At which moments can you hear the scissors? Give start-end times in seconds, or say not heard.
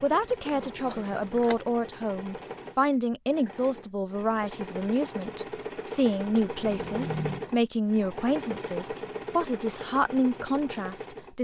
0.7-1.6, 6.7-7.5.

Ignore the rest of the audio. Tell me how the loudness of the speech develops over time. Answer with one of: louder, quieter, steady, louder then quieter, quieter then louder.
steady.